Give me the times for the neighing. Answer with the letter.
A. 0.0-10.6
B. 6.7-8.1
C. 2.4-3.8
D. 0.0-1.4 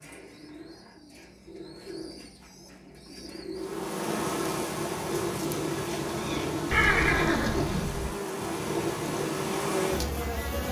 B.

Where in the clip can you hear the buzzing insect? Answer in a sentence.
The buzzing insect can be heard from 3.5 to 10.6 s.